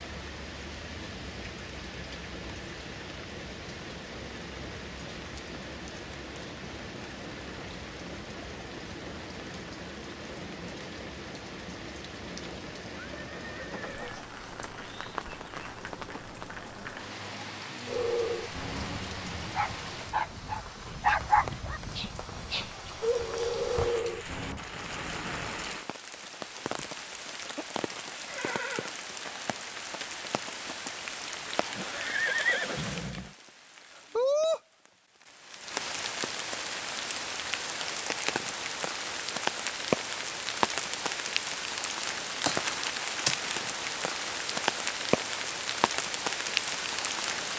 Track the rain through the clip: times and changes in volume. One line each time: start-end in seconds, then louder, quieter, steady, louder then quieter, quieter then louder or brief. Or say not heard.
0.0-47.5 louder.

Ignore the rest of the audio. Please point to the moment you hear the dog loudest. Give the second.
21 s.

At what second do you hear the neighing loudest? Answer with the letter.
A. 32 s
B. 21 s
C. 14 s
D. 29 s
A.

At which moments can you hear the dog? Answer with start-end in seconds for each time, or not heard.
17.9-24.6.